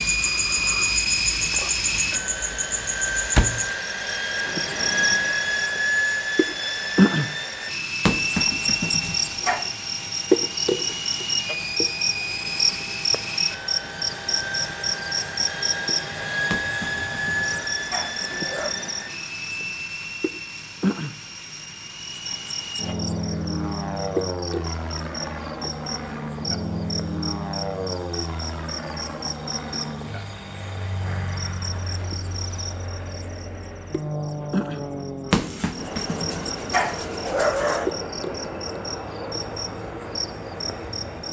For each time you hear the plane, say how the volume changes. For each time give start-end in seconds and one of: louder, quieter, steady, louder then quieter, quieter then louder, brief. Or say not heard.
0.0-41.2 quieter.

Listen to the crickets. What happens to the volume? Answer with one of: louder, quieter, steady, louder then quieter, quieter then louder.
quieter.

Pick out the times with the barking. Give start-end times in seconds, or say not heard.
8.1-9.7, 16.5-18.8, 35.3-37.9.